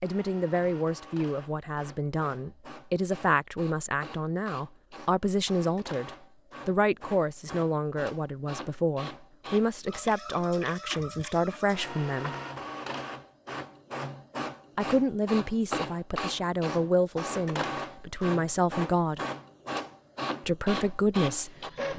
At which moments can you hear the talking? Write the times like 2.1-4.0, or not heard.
0.0-12.3, 14.8-19.2, 20.4-21.9.